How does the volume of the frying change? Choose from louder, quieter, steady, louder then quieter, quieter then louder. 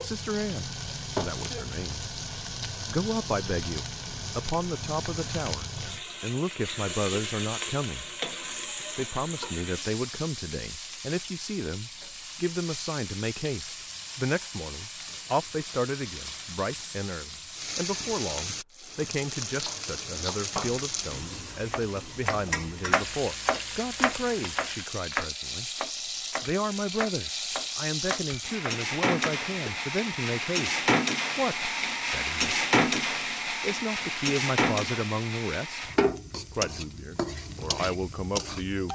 louder.